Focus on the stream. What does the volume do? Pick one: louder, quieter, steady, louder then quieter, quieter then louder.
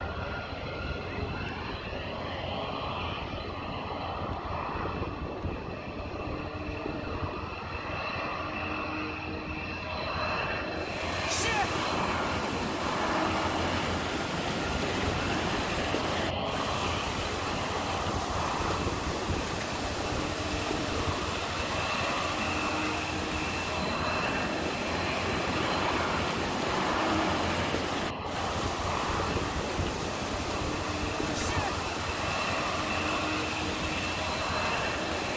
steady.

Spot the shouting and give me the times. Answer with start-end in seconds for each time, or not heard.
11.2-11.7, 31.3-31.8.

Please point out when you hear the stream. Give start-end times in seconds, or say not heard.
10.8-35.3.